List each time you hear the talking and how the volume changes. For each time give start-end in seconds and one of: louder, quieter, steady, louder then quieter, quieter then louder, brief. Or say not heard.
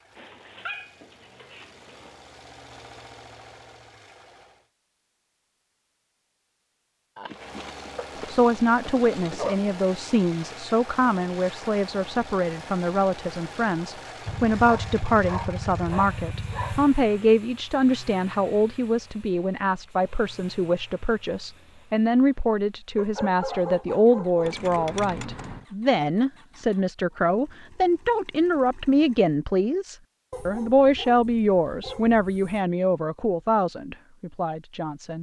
8.2-35.1 steady.